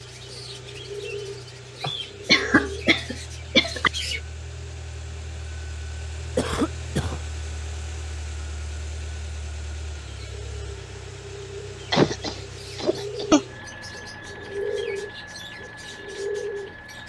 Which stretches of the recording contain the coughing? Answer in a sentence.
You can hear the coughing from 1.8 to 3.9 s, from 6.3 to 7.2 s and from 11.9 to 13.4 s.